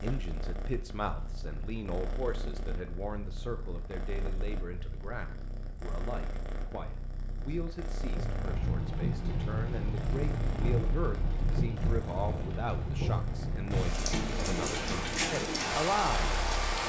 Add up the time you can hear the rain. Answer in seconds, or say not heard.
9 s.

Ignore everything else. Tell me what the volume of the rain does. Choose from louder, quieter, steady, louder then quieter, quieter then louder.
steady.